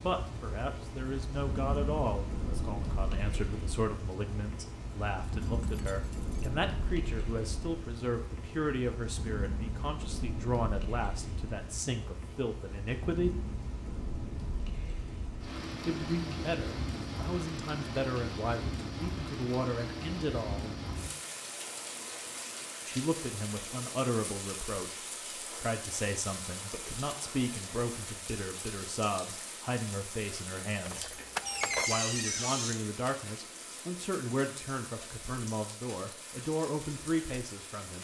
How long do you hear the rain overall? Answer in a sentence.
You can hear the rain for 38 seconds altogether.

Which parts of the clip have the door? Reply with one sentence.
The door can be heard from 31.4 to 32.8 s.